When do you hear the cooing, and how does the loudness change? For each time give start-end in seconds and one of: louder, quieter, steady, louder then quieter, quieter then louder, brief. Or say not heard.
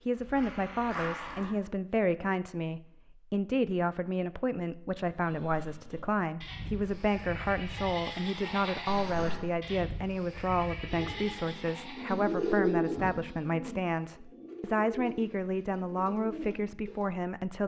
10.9-17.1 louder then quieter.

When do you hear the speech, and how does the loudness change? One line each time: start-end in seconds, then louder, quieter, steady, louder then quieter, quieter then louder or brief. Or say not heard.
0.1-17.6 steady.